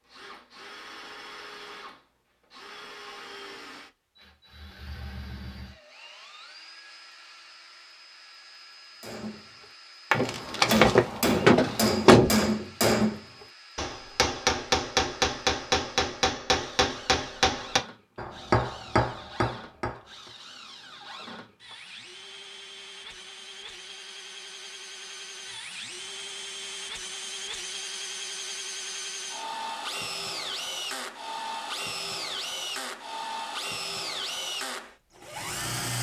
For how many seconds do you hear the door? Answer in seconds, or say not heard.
2 s.